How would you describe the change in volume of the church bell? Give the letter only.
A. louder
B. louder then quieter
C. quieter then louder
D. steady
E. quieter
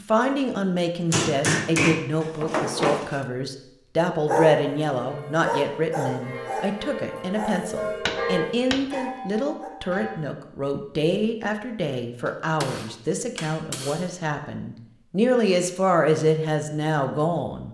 B.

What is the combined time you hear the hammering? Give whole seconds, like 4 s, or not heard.
5 s.